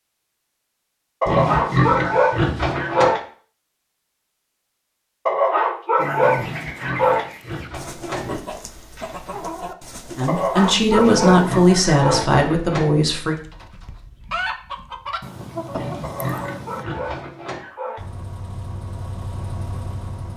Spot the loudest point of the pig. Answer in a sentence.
The volume of the pig peaks at 2 seconds.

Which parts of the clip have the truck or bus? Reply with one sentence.
You can hear the truck or bus from 17.9 to 20.3 s.